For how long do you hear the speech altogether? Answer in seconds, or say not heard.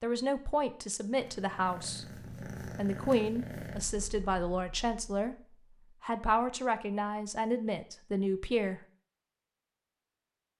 8 s.